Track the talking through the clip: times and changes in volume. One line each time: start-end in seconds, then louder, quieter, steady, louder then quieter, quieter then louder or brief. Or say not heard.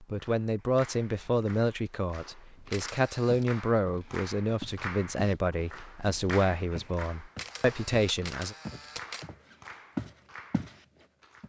0.0-8.6 steady.